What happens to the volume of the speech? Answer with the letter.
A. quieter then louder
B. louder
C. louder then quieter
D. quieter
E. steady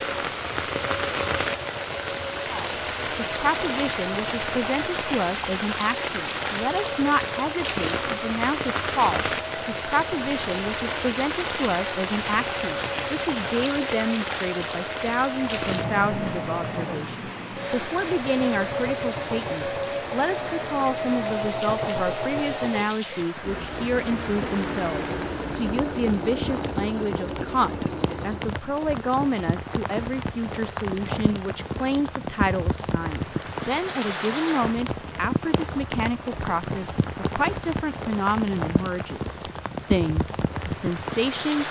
E.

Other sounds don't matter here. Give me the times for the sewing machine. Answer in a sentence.
You can hear the sewing machine from 0.0 to 28.6 s.